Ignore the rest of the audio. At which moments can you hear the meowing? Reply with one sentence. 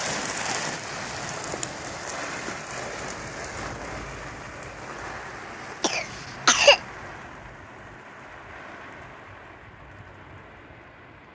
You can't hear the meowing here.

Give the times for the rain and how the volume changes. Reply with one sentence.
You can hear the rain from 0.0 to 11.2 s, getting quieter.